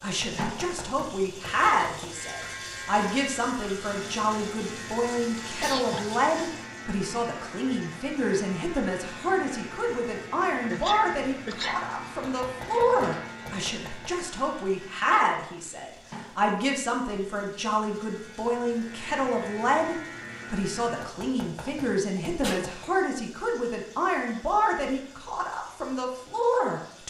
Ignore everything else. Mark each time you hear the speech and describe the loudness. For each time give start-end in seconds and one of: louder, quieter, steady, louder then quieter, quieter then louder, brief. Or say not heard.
0.0-27.0 steady.